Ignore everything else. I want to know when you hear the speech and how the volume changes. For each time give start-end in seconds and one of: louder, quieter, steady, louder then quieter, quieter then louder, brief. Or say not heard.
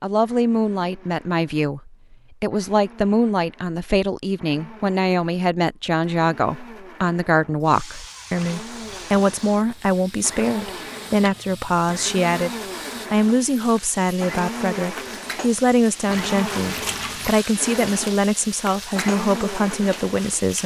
0.0-12.5 steady
13.1-20.6 steady.